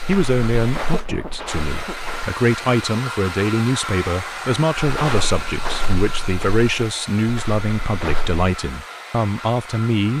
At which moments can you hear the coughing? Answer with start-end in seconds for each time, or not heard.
0.8-2.0.